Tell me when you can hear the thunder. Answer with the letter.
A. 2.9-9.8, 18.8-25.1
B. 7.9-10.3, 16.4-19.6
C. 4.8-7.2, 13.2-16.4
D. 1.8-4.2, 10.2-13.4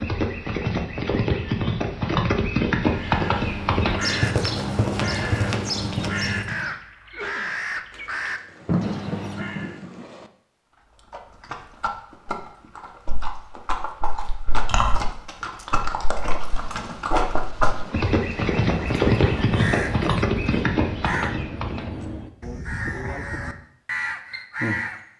B.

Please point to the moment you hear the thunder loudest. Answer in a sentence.
The volume of the thunder peaks at 9 seconds.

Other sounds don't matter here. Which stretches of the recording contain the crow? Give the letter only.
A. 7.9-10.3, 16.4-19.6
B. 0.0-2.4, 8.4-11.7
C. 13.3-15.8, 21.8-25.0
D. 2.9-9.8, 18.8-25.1
D.